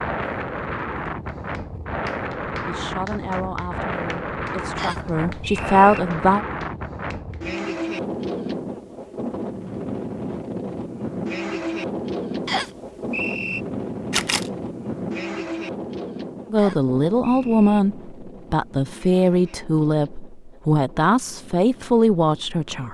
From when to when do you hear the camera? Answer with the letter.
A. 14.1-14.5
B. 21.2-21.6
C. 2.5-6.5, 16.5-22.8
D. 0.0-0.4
A.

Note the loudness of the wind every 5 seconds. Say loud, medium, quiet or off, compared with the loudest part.
loud, loud, loud, medium, quiet.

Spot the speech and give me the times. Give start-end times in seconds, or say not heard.
2.5-6.5, 16.5-22.8.